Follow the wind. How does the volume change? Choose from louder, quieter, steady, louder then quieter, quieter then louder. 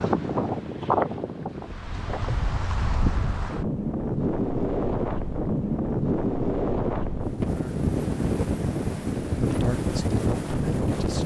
steady.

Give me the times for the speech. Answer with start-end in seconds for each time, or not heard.
9.2-11.2.